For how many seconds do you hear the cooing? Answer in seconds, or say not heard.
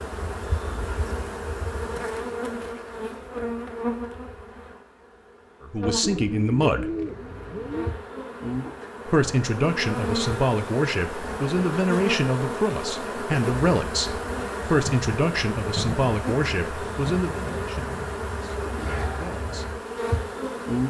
2 s.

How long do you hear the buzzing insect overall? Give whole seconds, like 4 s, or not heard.
21 s.